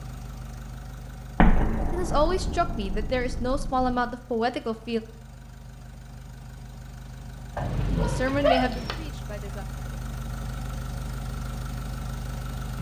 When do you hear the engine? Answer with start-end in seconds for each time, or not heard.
0.0-12.7.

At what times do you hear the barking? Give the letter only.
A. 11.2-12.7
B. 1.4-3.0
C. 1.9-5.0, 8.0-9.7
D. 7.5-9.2
D.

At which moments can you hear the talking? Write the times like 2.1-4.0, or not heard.
1.9-5.0, 8.0-9.7.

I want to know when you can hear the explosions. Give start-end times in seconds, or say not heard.
1.4-4.0.